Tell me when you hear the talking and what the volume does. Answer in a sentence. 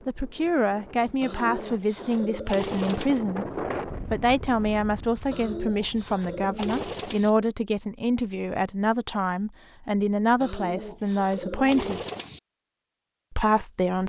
The talking can be heard from 0.1 to 12.0 s, at a steady volume; and briefly from 13.3 to 14.0 s.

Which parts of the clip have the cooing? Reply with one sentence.
You can hear the cooing from 1.2 to 3.1 s, from 5.3 to 7.3 s and from 10.4 to 12.4 s.